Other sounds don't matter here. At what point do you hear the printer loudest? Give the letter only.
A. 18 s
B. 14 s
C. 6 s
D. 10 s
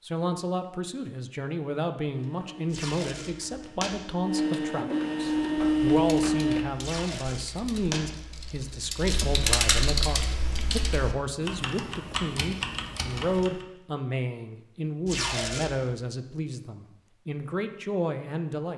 C.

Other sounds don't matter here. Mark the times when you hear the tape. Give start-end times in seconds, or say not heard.
2.7-3.9, 6.8-8.0, 15.1-15.9.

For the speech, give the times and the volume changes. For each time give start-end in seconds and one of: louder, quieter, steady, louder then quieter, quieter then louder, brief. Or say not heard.
0.0-18.7 steady.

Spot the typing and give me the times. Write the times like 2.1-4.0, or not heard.
5.2-13.5.